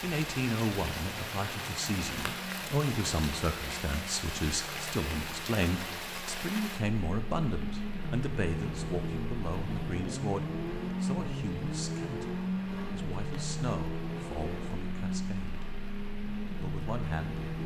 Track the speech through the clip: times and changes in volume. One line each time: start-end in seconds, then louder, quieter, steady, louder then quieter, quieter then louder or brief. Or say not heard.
0.0-15.7 quieter
16.6-17.4 brief.